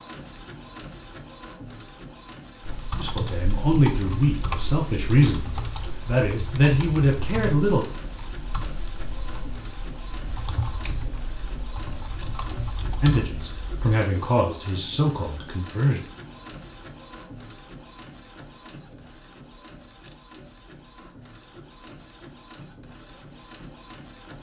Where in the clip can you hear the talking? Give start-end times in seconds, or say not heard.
3.0-7.8, 13.0-16.0.